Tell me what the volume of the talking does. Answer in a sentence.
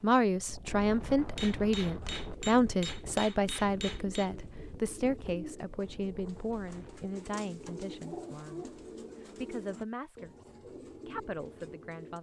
The loudness of the talking goes down.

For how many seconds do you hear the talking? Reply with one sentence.
The talking can be heard for 12 seconds in total.